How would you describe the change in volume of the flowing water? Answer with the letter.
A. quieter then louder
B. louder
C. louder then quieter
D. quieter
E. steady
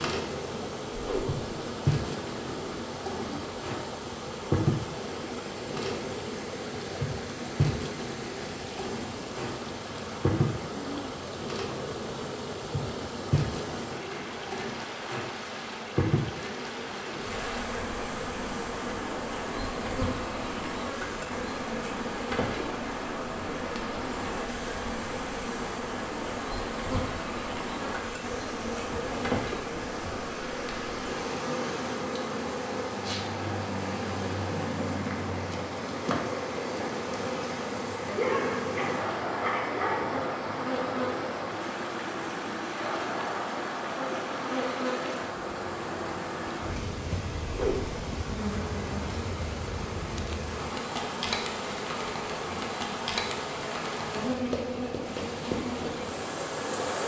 E.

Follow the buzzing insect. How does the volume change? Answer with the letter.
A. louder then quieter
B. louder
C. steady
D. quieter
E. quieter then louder
C.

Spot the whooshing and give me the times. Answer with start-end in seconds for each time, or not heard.
0.9-1.4, 47.5-48.0.